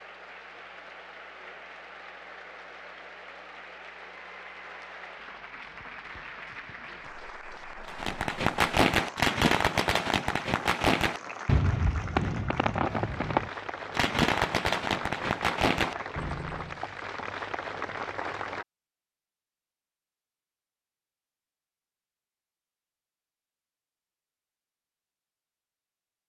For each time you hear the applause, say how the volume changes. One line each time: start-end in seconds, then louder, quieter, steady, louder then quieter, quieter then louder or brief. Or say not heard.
0.0-18.6 louder.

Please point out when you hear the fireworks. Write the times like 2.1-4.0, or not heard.
7.8-16.8.